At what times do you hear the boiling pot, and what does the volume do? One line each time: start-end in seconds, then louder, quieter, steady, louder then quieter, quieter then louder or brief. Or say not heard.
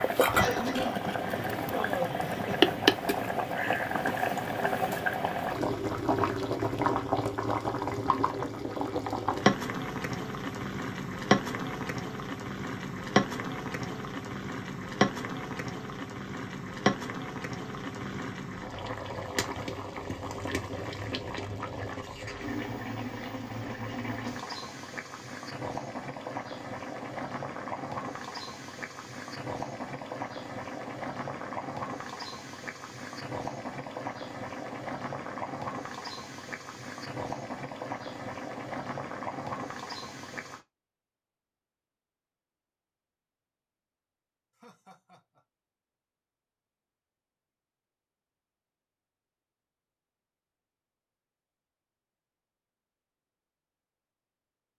0.0-40.6 quieter.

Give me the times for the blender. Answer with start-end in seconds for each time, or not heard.
not heard.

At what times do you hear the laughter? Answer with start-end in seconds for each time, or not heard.
0.3-2.8, 44.5-45.4.